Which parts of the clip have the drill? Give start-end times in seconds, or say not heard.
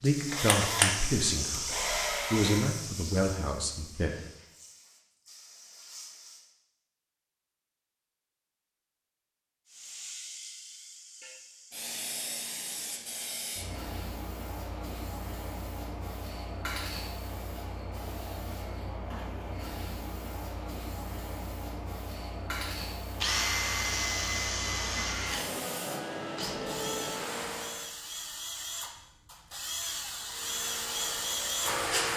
0.1-2.7, 23.2-31.9.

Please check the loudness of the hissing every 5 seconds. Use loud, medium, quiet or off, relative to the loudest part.
loud, quiet, medium, medium, medium, loud, loud.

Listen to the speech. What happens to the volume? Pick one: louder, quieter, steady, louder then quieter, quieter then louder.
steady.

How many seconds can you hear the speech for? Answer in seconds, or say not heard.
4 s.